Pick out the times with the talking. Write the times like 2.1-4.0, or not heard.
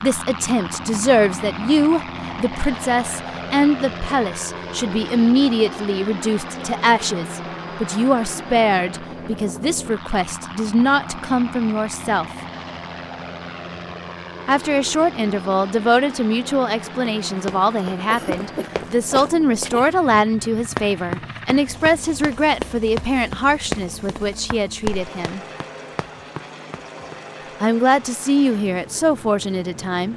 0.0-12.2, 14.4-25.4, 27.6-30.1.